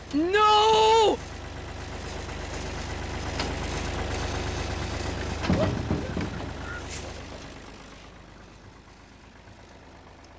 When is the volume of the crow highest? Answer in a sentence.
The volume of the crow peaks at 7 seconds.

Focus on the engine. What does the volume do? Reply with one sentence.
The loudness of the engine goes up, then down.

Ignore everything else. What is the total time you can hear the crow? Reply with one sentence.
The crow can be heard for 2 seconds in total.